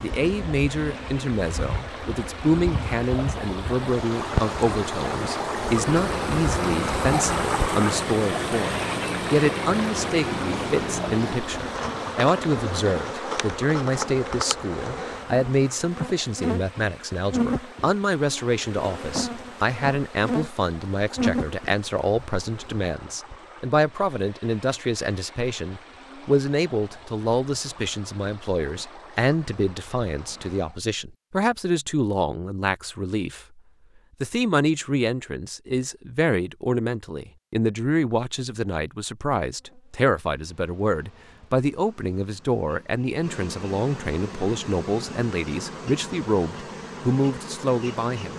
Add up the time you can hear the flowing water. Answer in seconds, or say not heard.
31 s.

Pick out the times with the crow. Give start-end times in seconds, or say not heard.
not heard.